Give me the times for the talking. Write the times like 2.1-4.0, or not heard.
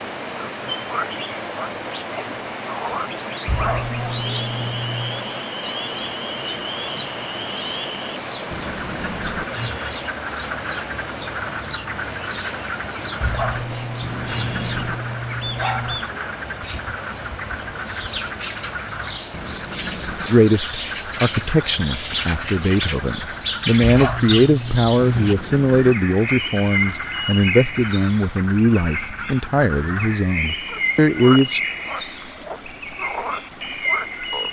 20.2-31.6.